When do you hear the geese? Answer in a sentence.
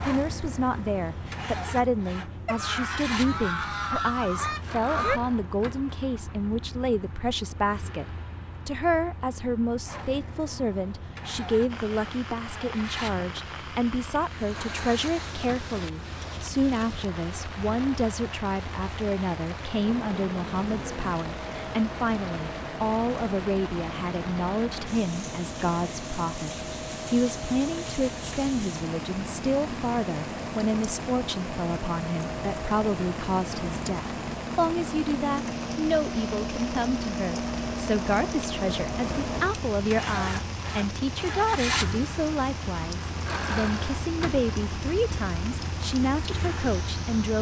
The geese can be heard from 2.5 to 5.2 s.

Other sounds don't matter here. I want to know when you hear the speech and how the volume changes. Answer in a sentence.
You can hear the speech from 0.0 to 47.3 s, at a steady volume.